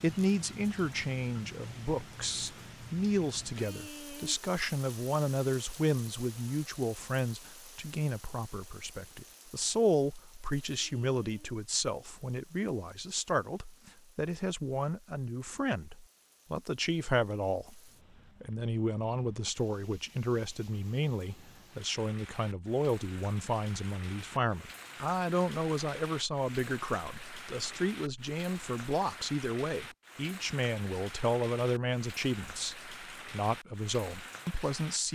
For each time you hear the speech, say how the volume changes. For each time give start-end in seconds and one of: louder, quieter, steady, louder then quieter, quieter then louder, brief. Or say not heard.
0.0-17.8 steady
18.4-35.1 steady.